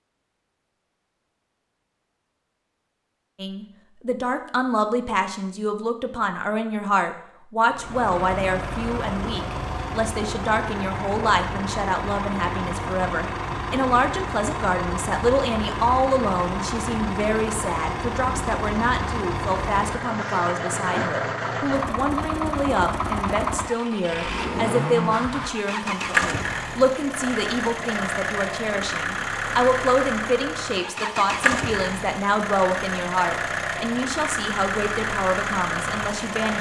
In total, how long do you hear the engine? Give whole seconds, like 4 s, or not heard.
29 s.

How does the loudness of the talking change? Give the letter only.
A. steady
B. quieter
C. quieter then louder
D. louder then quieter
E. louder
A.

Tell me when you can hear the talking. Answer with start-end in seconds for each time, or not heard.
3.4-36.5.